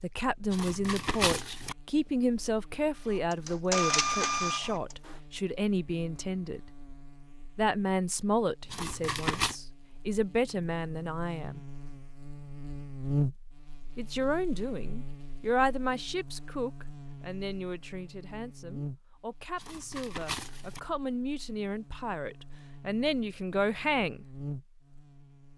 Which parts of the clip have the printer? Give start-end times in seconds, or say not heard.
3.1-5.2.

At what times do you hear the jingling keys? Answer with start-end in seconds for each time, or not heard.
not heard.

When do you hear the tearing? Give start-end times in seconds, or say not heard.
0.5-1.8, 8.7-9.6, 19.6-20.8.